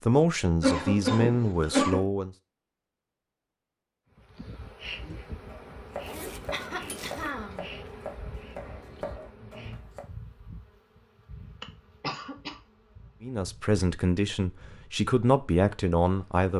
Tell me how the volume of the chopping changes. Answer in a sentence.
The volume of the chopping stays about the same.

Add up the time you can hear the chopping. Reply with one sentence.
The chopping can be heard for 5 seconds in total.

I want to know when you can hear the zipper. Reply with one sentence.
The zipper can be heard from 6.0 to 7.3 s.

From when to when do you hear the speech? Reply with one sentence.
You can hear the speech from 0.0 to 2.4 s and from 13.2 to 16.5 s.